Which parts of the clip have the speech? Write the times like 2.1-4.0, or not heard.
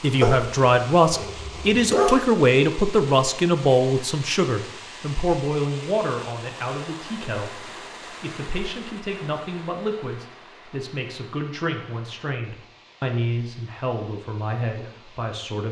0.0-15.6.